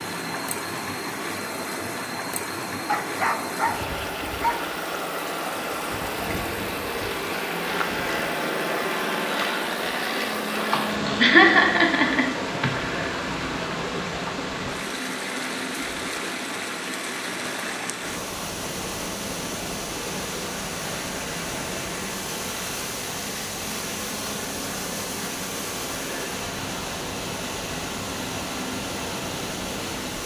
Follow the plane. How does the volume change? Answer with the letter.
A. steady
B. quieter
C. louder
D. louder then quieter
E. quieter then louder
D.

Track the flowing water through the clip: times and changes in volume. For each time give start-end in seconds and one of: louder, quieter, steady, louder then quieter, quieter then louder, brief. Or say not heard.
0.0-30.2 steady.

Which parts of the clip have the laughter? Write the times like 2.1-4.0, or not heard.
10.7-12.7.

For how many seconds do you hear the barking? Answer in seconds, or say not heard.
2 s.